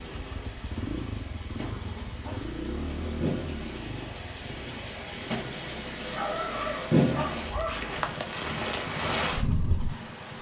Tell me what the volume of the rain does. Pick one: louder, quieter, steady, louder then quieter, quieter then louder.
louder.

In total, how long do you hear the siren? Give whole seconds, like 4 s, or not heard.
not heard.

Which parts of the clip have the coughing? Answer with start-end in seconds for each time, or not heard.
not heard.